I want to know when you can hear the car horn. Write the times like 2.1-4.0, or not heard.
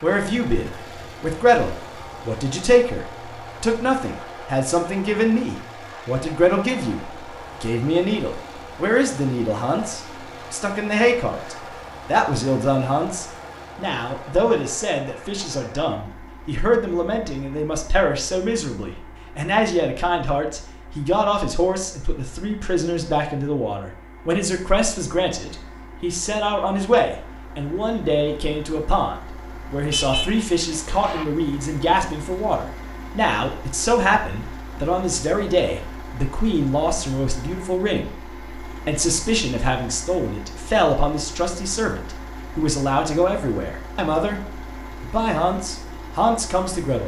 29.9-31.2.